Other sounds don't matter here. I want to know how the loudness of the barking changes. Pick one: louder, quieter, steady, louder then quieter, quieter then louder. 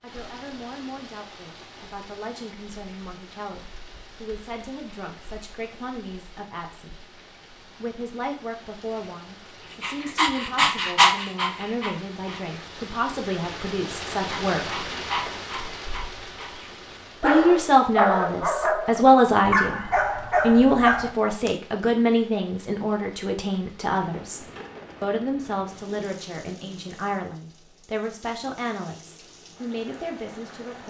quieter then louder.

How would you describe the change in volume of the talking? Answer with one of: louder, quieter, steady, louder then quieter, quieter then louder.
louder then quieter.